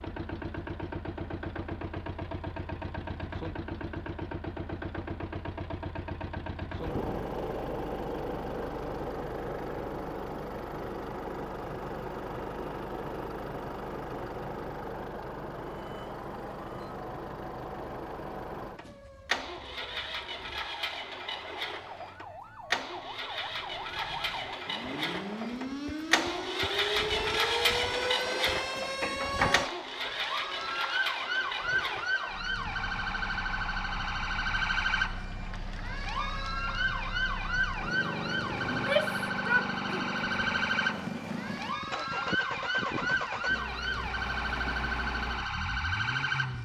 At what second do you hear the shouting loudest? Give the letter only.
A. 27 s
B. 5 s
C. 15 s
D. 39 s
D.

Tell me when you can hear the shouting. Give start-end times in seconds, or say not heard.
38.7-40.2.